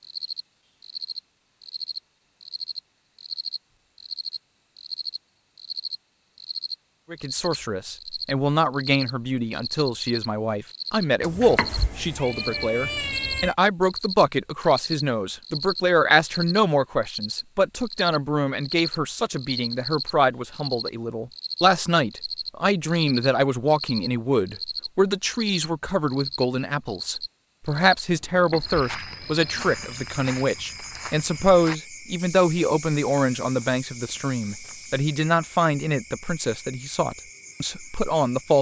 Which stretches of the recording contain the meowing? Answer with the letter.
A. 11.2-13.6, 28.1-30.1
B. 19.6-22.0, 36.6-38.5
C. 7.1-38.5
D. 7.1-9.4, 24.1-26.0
A.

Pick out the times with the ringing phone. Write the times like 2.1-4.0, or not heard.
not heard.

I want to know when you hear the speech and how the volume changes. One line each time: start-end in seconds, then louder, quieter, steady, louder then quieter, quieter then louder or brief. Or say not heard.
7.1-38.5 steady.